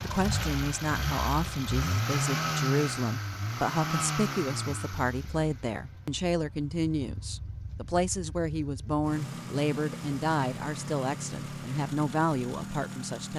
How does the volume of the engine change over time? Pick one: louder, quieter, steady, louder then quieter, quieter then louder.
quieter then louder.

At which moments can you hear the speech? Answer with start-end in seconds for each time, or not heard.
0.0-13.3.